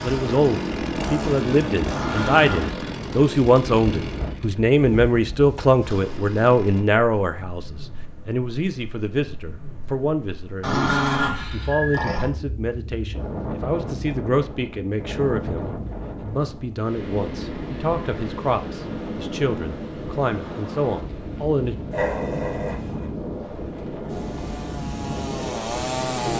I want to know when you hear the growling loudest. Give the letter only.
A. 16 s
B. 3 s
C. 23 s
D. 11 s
D.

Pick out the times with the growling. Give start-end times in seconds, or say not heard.
1.9-2.8, 10.6-12.3, 21.9-23.1.